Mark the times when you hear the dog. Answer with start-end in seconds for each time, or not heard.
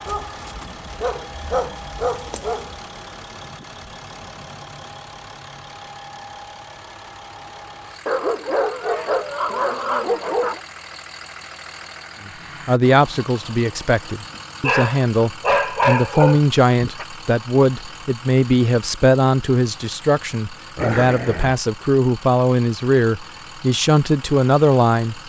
0.1-2.8, 8.1-10.6, 14.3-17.1, 20.8-21.6.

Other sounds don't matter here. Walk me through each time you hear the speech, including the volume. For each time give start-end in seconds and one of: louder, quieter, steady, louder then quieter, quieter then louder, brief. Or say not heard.
12.2-25.2 steady.